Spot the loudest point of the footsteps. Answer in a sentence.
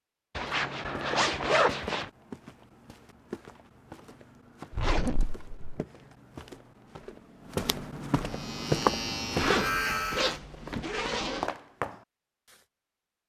The volume of the footsteps peaks at 9 seconds.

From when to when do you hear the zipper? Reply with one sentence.
The zipper can be heard from 0.3 to 2.1 s, from 4.8 to 5.8 s and from 9.3 to 11.5 s.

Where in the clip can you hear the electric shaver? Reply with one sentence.
You can hear the electric shaver from 8.2 to 10.4 s.